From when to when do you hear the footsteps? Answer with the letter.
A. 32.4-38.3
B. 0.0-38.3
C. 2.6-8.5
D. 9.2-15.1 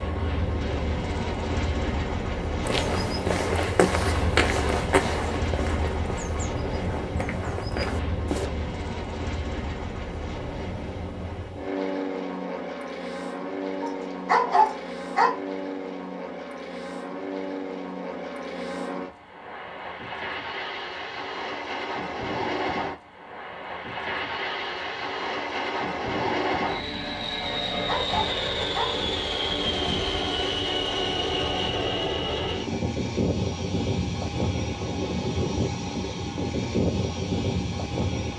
C.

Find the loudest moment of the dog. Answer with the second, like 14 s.
14 s.